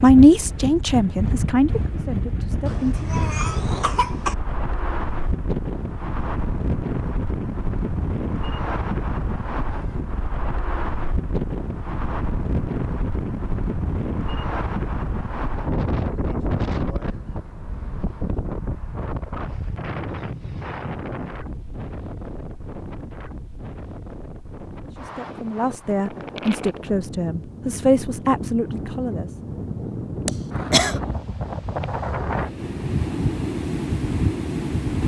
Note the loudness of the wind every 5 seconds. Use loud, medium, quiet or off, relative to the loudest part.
loud, loud, loud, loud, medium, medium, loud.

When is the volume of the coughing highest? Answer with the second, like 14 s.
31 s.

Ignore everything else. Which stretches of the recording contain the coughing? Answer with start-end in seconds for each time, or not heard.
2.6-4.3, 30.2-31.0.